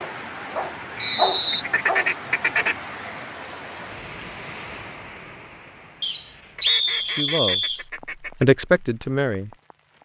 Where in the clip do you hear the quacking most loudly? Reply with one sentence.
The loudest moment of the quacking is at 2 seconds.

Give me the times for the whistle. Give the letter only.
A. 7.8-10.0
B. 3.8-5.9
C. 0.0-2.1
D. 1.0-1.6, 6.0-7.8
D.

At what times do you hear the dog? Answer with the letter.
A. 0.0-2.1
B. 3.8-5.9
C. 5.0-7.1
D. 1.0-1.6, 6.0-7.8
A.